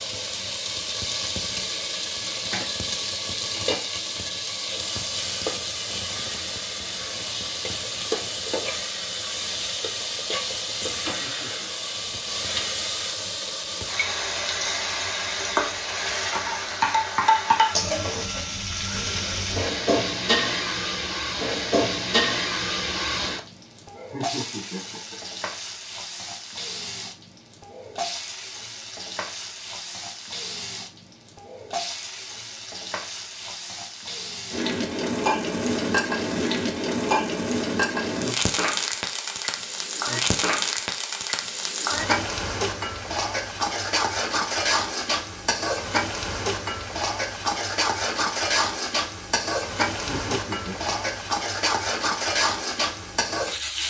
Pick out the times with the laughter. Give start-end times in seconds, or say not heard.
11.0-11.7, 23.9-25.2, 50.0-51.1.